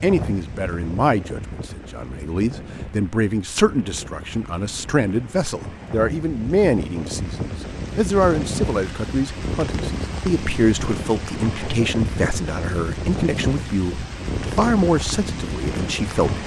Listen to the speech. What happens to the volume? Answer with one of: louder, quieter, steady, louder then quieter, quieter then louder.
steady.